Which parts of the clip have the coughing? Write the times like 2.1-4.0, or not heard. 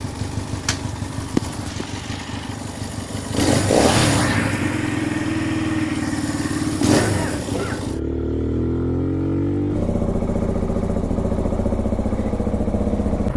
6.9-7.9.